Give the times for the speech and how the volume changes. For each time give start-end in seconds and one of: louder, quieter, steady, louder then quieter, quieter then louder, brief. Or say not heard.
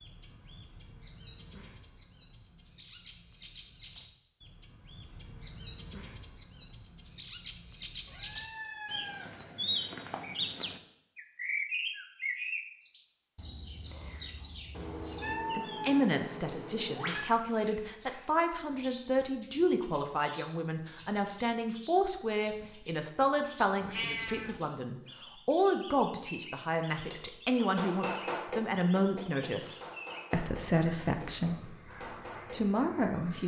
15.6-31.8 steady
32.5-33.4 brief.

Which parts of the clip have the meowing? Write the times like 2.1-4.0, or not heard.
8.1-9.3, 14.8-17.2, 23.8-24.6.